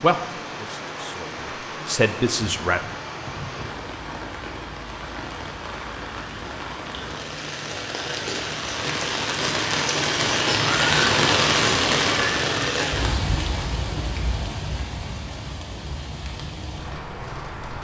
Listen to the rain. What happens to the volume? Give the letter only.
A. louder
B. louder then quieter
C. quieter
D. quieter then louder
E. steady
B.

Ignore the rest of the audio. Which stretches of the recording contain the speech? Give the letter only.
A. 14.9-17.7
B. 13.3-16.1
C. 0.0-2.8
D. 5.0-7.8
C.